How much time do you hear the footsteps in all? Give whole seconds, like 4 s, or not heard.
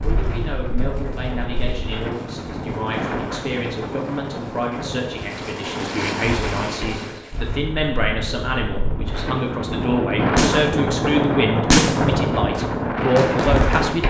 not heard.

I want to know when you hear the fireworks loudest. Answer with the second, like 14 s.
12 s.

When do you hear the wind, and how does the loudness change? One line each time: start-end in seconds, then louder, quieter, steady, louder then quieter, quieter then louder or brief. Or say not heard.
0.0-14.0 louder.